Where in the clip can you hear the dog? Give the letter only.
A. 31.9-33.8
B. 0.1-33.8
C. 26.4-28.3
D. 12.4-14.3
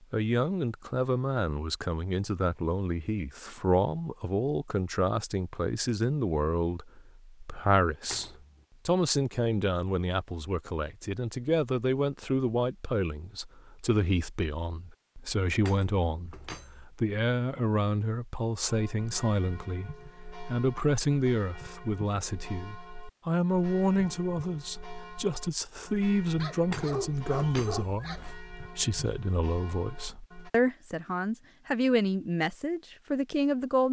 C.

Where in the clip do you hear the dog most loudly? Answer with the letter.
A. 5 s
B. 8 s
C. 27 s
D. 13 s
C.